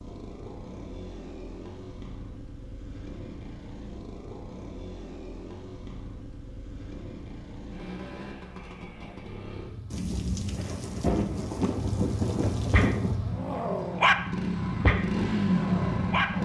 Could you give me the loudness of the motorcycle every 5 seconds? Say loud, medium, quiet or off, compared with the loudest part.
quiet, quiet, medium, loud.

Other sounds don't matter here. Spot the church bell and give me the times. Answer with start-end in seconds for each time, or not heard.
not heard.